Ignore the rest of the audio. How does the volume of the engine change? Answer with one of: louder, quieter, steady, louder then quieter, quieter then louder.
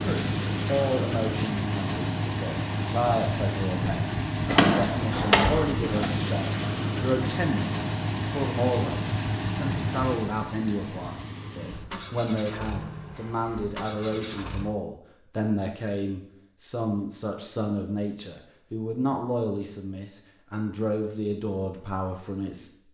quieter.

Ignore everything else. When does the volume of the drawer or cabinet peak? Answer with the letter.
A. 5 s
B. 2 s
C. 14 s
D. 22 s
A.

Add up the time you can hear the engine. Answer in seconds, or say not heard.
15 s.